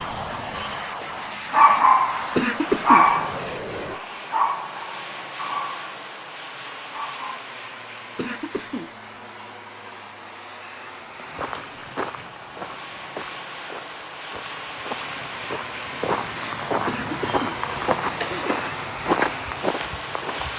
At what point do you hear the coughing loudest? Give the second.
3 s.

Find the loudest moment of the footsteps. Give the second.
19 s.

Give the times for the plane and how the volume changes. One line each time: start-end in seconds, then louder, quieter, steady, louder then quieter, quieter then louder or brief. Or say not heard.
0.0-20.5 quieter then louder.